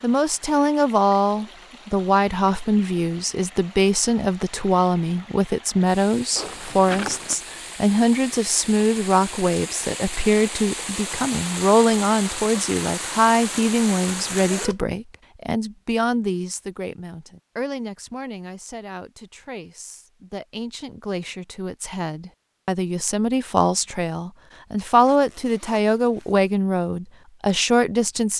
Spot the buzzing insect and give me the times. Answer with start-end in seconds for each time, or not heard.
not heard.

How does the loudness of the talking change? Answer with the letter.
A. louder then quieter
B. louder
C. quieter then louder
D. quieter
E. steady
C.